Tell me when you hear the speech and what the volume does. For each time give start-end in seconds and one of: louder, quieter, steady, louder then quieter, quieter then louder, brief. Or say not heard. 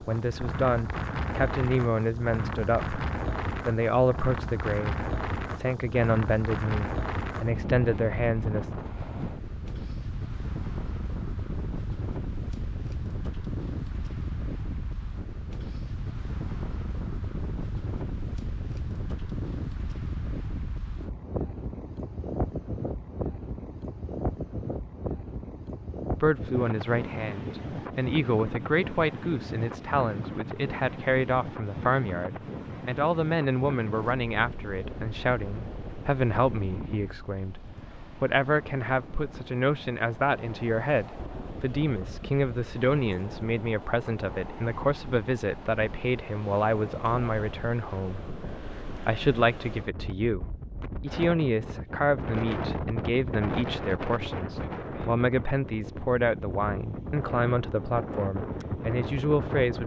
0.0-8.7 steady
26.2-59.8 steady.